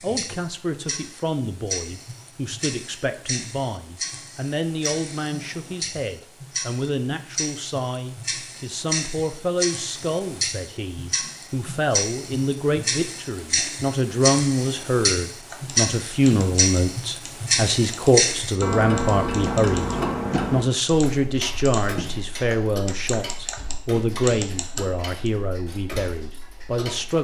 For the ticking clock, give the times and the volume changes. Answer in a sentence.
You can hear the ticking clock from 0.0 to 27.1 s, getting louder then quieter.